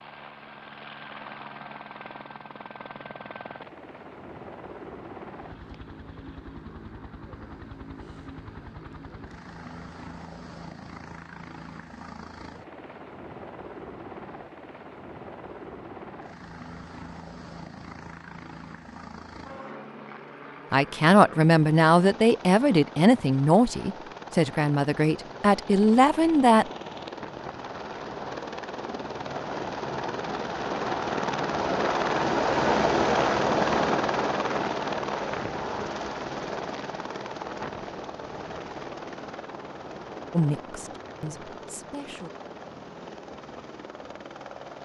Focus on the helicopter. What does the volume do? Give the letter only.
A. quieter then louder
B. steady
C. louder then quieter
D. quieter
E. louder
C.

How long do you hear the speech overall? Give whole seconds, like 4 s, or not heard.
8 s.